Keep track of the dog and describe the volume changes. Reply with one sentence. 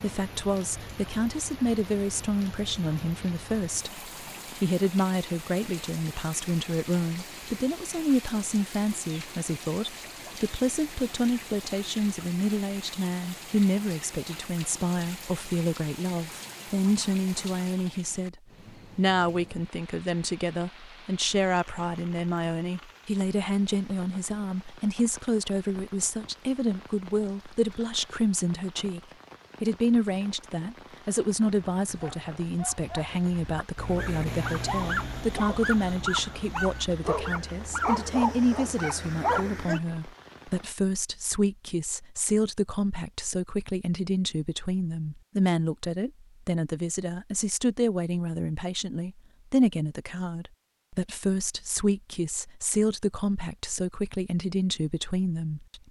The loudness of the dog goes up.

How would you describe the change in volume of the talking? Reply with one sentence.
The volume of the talking stays about the same.